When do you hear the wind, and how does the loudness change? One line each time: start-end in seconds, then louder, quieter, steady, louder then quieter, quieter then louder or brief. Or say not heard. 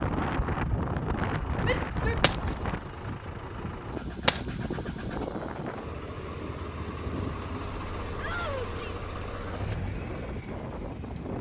0.0-11.3 quieter.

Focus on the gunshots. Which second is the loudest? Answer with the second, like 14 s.
4 s.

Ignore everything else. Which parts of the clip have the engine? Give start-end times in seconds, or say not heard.
0.2-11.3.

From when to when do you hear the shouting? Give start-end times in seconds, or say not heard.
1.6-2.2, 8.2-8.9.